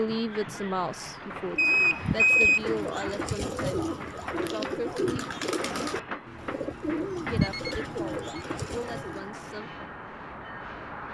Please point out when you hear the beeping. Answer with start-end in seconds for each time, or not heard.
1.6-2.6, 6.2-8.2.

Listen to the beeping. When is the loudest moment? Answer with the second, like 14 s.
2 s.